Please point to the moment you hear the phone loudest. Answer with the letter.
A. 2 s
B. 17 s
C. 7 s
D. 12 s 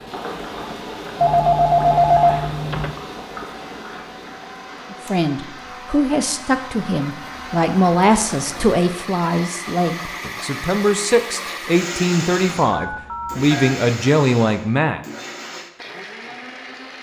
A.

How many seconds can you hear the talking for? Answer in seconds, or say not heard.
10 s.